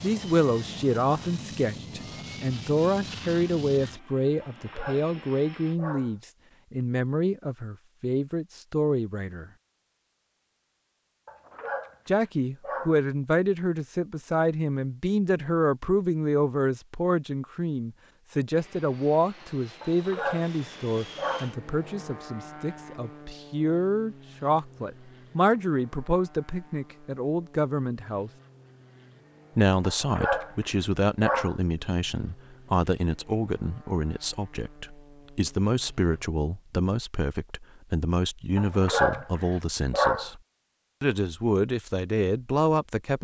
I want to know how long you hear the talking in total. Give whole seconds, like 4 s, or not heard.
39 s.